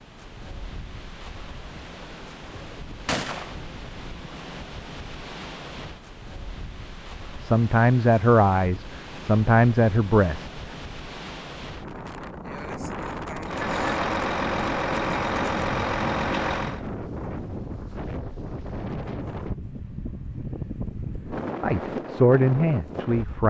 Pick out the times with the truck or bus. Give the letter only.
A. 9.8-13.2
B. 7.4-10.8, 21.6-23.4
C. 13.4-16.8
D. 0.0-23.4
C.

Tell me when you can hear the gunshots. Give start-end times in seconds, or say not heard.
3.0-3.5.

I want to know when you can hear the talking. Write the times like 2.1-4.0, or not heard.
7.4-10.8, 21.6-23.4.